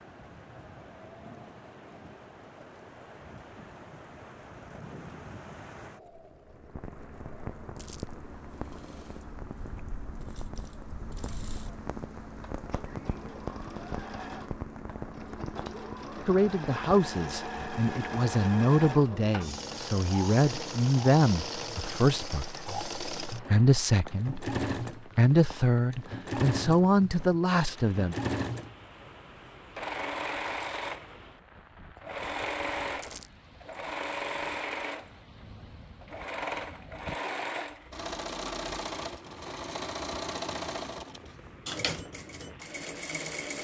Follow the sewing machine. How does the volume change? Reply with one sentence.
The loudness of the sewing machine goes up.